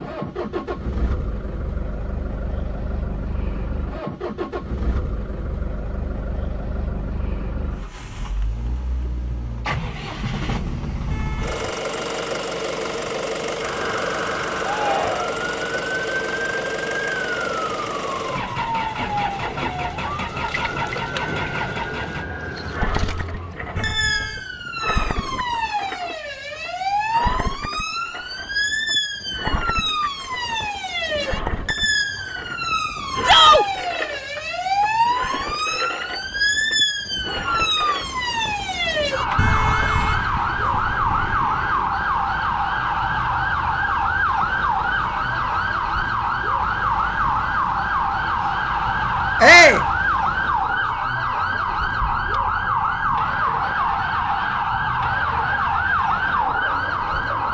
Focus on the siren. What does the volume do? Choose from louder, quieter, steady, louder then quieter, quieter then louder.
louder.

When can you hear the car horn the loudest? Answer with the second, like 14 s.
40 s.